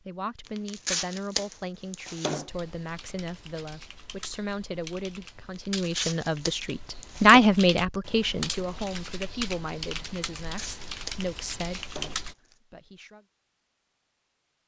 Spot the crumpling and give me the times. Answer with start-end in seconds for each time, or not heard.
0.5-2.5, 5.5-7.4, 10.4-12.6.